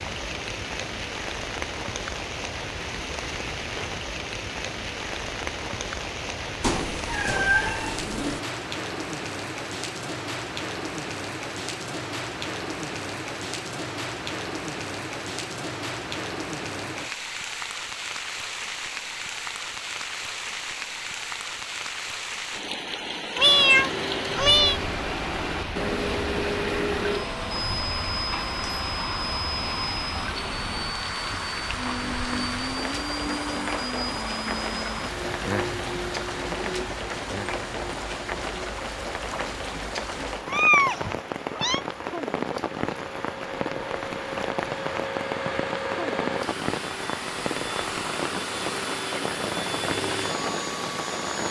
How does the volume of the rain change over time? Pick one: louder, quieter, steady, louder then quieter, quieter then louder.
steady.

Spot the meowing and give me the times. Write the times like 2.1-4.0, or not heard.
6.6-8.4, 23.4-24.8, 40.5-41.8.